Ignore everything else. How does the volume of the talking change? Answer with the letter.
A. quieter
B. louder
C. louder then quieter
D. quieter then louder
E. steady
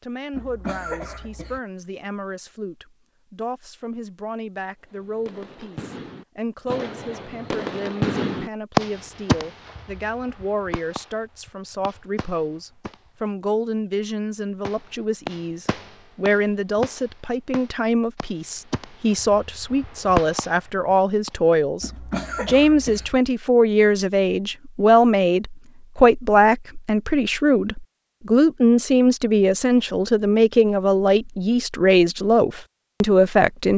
B.